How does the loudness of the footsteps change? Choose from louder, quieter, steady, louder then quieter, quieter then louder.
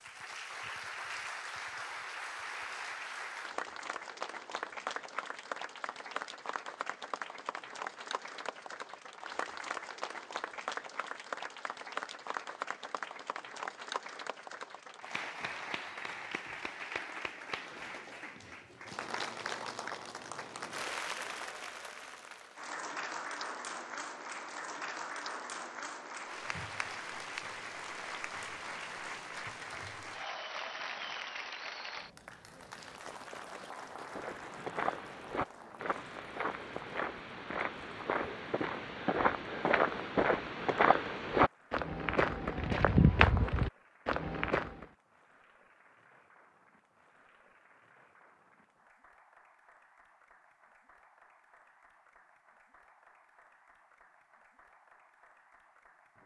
louder.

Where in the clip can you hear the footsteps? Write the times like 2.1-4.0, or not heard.
34.0-44.9.